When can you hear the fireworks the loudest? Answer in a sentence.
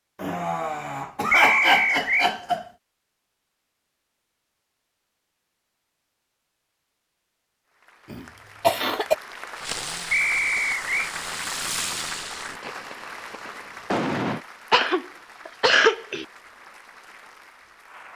The volume of the fireworks peaks at 14 seconds.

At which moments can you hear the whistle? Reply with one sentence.
The whistle can be heard from 1.3 to 2.3 s and from 10.1 to 11.1 s.